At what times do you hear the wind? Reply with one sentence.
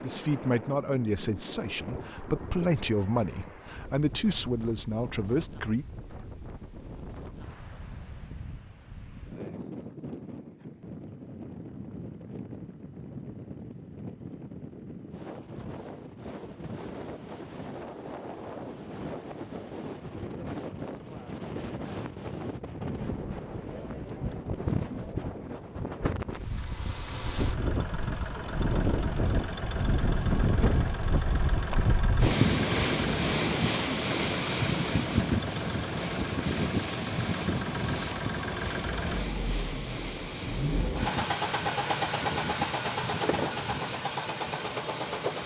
The wind can be heard from 0.0 to 45.4 s.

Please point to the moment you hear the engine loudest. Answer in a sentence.
The loudest moment of the engine is at 42 seconds.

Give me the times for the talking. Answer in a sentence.
You can hear the talking from 0.0 to 5.8 s.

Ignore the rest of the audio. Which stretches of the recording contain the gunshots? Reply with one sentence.
The gunshots can't be heard in this clip.